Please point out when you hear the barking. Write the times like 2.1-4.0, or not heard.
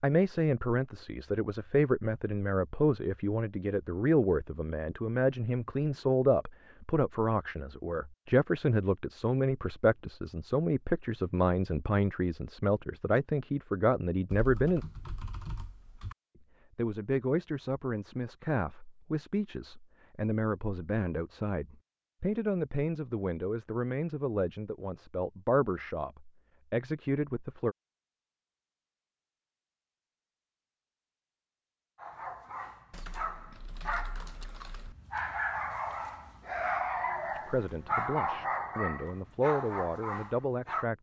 31.9-40.9.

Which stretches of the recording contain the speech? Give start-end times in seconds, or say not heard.
0.0-14.8, 16.8-27.8, 37.4-40.9.